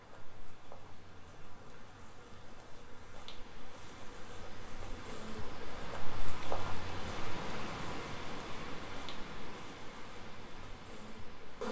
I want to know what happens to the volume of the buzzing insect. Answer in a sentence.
The volume of the buzzing insect goes up, then down.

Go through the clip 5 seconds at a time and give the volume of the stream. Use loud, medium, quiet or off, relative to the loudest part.
medium, loud, medium.